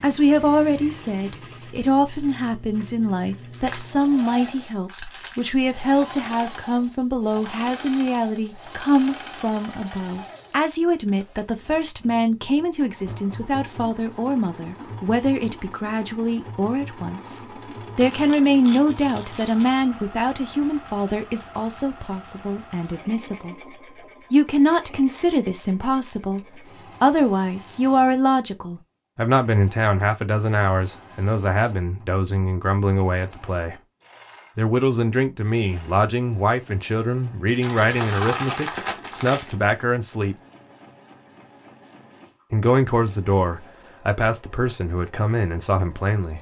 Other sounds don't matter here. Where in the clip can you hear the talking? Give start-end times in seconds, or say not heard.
0.0-23.6, 24.3-33.8, 34.5-40.4, 42.5-46.3.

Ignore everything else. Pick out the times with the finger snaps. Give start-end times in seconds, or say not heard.
not heard.